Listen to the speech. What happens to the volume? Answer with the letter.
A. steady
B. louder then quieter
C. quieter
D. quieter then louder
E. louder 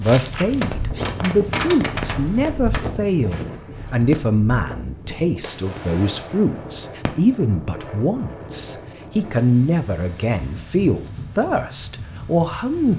A.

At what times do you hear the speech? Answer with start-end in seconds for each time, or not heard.
0.0-12.9.